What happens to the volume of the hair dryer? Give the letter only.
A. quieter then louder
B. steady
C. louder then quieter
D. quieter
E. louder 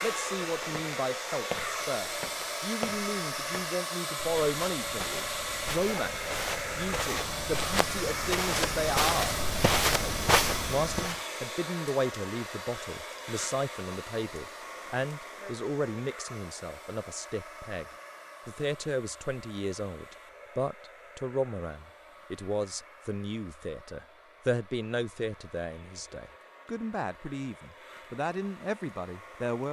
D.